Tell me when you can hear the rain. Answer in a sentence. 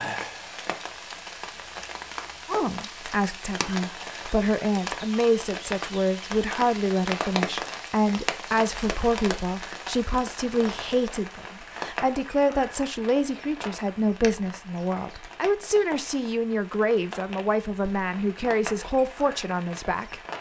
You can hear the rain from 0.0 to 20.3 s.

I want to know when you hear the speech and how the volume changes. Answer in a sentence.
You can hear the speech from 2.5 to 20.3 s, at a steady volume.